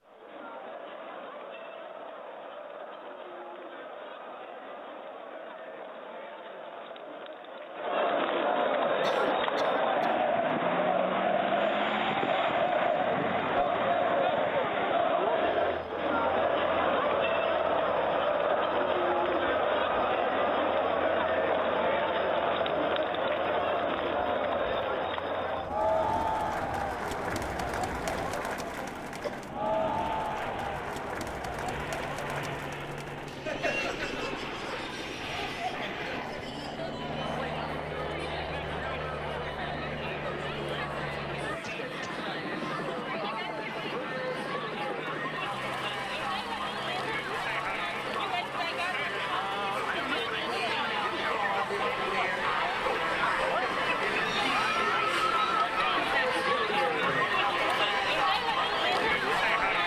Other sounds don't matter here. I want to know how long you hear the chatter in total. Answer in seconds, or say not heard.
60 s.